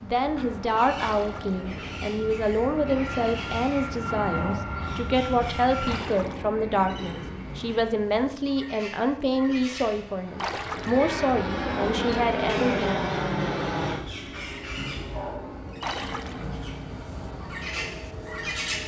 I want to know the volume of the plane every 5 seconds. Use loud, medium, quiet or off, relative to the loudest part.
medium, medium, loud, medium.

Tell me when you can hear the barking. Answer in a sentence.
You can hear the barking from 4.3 to 4.7 s and from 15.1 to 15.6 s.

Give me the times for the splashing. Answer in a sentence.
You can hear the splashing from 1.0 to 1.6 s, from 5.8 to 6.5 s, from 10.3 to 11.0 s and from 15.8 to 16.4 s.